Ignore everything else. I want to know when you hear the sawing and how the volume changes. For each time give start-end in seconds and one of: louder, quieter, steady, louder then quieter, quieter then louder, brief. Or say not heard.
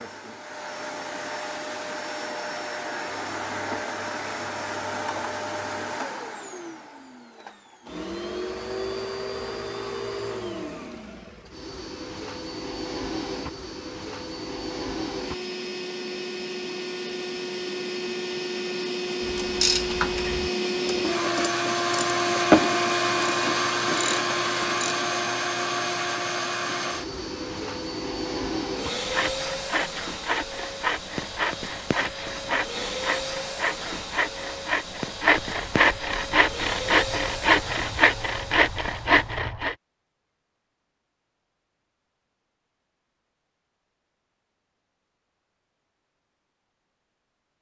28.9-39.8 louder.